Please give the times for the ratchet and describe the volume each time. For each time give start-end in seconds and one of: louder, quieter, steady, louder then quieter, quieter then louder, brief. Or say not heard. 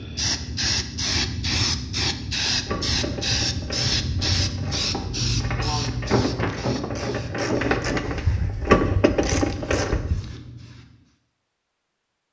2.5-10.2 louder.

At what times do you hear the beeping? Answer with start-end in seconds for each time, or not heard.
not heard.